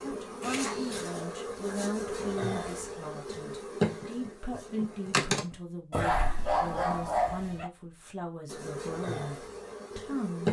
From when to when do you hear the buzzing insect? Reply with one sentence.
The buzzing insect can be heard from 0.0 to 5.5 s and from 8.4 to 10.4 s.